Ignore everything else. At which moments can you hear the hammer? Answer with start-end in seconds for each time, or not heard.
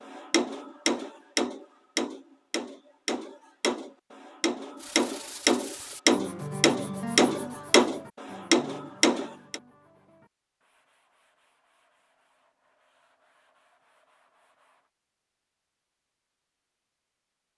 0.1-9.6.